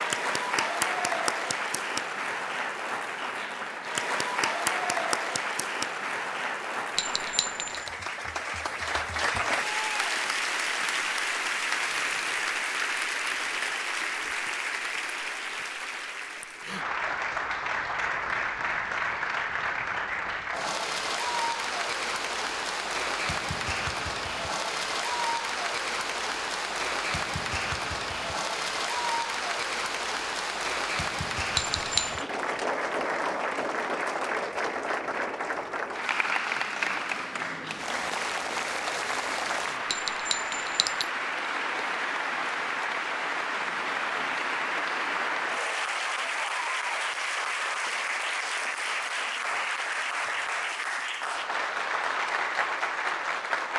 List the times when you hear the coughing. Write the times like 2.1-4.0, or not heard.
not heard.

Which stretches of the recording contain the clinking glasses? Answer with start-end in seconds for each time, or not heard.
7.0-7.9, 31.6-32.2, 39.9-41.1.